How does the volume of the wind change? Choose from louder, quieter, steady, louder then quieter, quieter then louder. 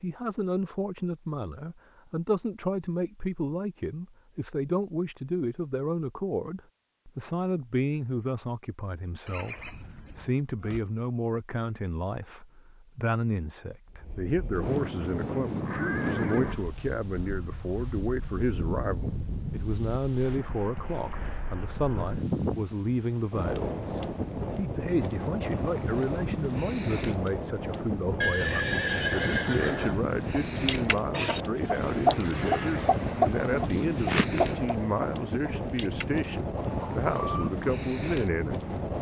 steady.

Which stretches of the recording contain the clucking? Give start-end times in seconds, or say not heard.
30.3-37.7.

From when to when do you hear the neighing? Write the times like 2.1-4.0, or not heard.
9.2-10.8, 15.5-16.7, 28.2-30.0.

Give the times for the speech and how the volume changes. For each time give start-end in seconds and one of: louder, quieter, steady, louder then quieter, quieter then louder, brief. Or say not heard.
0.0-38.9 steady.